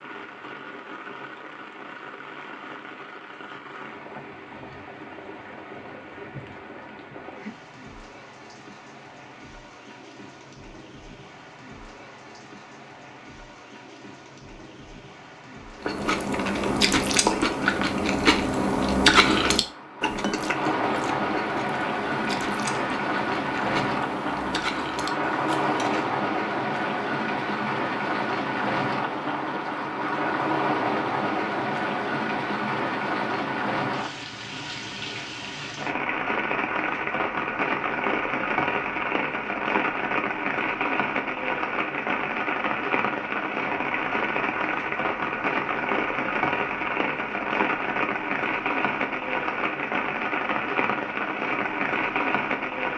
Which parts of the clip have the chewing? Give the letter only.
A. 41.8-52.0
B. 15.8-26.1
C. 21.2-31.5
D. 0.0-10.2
B.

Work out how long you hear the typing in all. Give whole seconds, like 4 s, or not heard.
not heard.